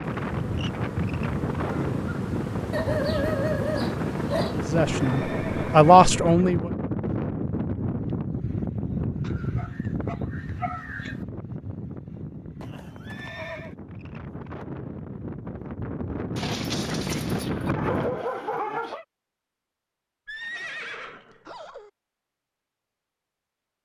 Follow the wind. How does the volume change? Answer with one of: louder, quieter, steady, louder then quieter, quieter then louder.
quieter then louder.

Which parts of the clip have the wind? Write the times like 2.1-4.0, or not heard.
0.0-18.2.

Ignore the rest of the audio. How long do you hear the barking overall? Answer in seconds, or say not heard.
7 s.